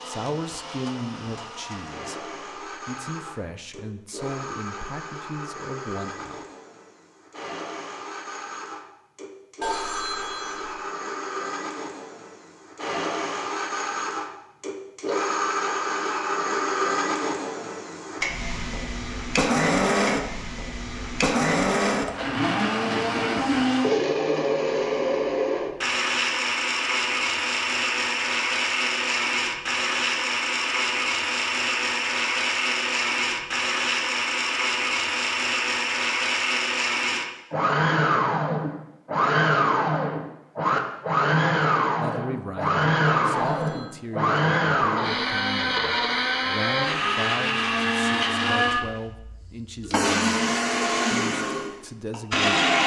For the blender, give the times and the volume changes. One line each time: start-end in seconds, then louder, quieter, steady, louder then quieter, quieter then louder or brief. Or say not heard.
0.0-52.8 louder.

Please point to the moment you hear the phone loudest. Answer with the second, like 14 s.
10 s.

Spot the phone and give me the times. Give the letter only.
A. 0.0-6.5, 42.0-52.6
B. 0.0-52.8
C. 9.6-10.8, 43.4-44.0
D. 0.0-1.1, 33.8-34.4
C.